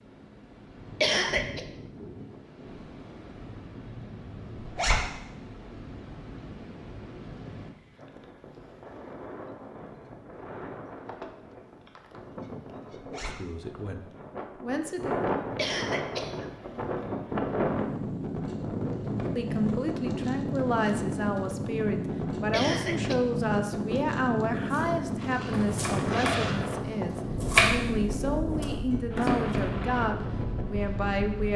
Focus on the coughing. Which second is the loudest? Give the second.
1 s.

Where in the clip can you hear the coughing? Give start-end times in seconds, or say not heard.
1.0-1.6, 15.6-16.5, 22.5-23.1.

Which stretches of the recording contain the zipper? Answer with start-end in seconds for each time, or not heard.
4.5-5.0, 12.9-13.3, 25.1-26.6.